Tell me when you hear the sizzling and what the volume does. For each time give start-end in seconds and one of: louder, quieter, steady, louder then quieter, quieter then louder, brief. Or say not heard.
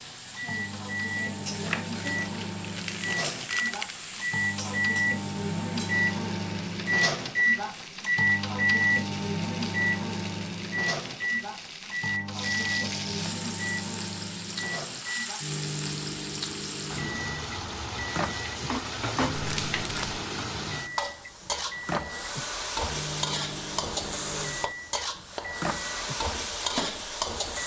0.0-27.6 louder.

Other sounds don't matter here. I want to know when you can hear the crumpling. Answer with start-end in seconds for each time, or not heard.
1.6-4.0, 19.3-20.2.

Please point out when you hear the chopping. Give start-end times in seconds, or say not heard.
not heard.